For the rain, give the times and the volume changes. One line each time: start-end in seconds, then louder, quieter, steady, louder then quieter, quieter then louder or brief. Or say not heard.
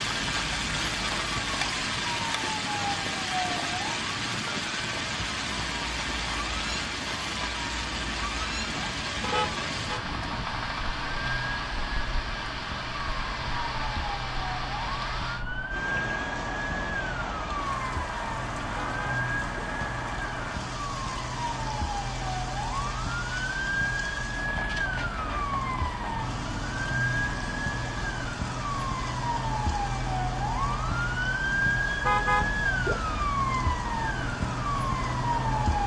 0.0-35.8 quieter.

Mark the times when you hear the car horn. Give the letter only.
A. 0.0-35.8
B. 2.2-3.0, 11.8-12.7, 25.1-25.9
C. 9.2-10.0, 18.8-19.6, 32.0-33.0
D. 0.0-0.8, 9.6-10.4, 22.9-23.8
C.